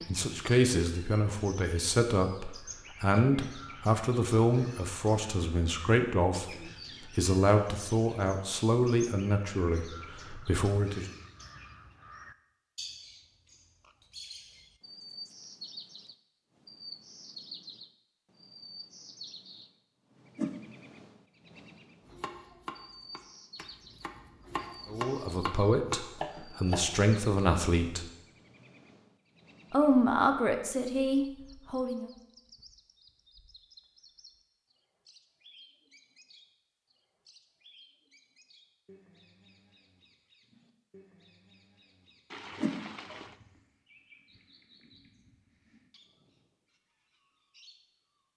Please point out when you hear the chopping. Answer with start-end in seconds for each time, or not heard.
22.1-27.1.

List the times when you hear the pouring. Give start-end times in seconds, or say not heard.
42.3-43.4.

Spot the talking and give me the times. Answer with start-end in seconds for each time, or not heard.
0.1-11.1, 24.9-28.1, 29.7-32.1.